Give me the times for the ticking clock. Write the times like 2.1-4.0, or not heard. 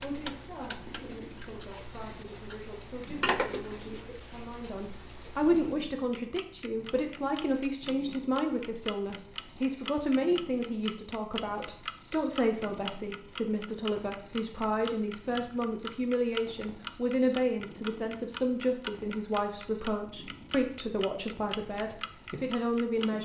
0.0-23.2.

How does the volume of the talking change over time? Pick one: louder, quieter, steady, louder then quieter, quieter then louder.
louder.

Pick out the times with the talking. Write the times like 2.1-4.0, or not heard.
0.0-23.2.